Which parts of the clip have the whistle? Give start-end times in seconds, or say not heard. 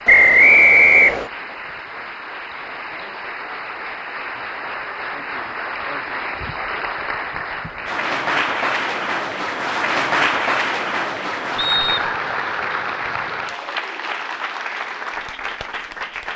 0.1-1.3, 11.6-12.1.